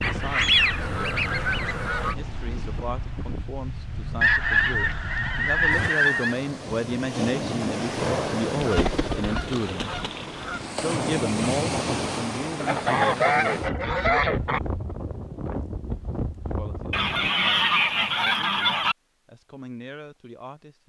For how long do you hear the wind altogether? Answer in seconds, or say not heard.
17 s.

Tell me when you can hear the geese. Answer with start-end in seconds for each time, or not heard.
0.0-2.1, 4.2-6.3, 8.6-10.7, 12.6-14.6, 16.9-18.9.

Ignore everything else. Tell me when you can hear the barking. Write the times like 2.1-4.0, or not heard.
not heard.